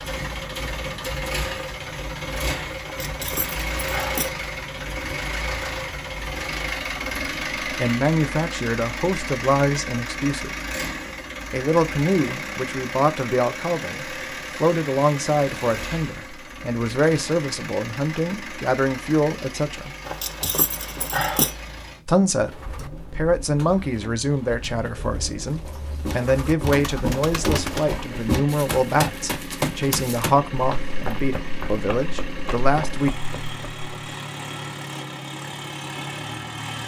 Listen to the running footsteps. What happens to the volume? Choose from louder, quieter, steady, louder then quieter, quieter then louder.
quieter.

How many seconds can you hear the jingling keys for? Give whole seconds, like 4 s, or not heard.
3 s.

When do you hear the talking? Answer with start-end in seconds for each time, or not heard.
7.8-10.6, 11.5-19.9, 22.1-33.1.